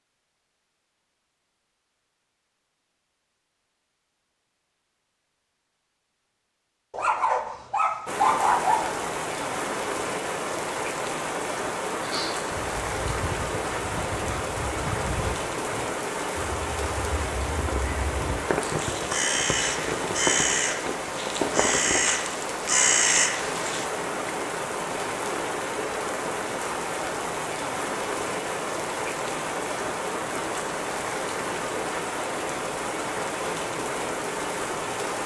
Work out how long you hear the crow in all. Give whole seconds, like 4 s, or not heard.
12 s.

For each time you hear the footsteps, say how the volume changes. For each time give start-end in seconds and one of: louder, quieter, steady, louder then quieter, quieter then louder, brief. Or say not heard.
not heard.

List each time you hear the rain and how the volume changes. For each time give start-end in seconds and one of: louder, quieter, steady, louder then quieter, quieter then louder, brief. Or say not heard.
8.1-35.2 steady.